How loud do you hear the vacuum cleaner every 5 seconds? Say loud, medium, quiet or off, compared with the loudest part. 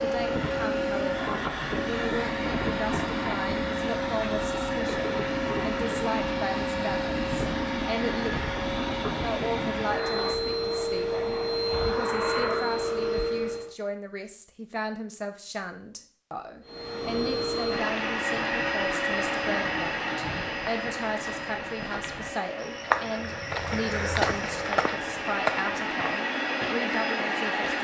loud, loud, loud, loud, medium, loud.